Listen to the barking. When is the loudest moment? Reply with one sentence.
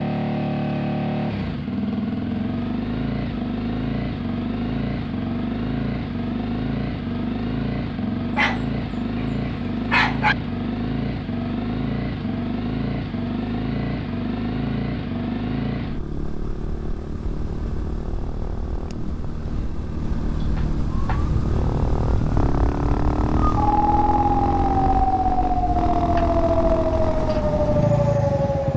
The loudest moment of the barking is at 10 seconds.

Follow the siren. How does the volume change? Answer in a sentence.
The volume of the siren goes up.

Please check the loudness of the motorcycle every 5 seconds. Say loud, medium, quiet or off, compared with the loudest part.
loud, loud, loud, medium, loud, loud.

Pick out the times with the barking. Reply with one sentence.
The barking can be heard from 8.3 to 10.3 s.